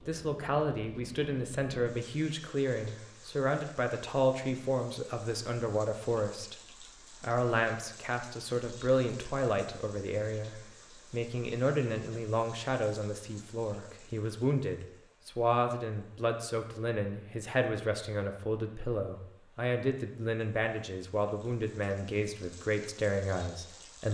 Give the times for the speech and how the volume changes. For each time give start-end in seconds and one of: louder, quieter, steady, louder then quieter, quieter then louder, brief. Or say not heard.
0.0-24.0 steady.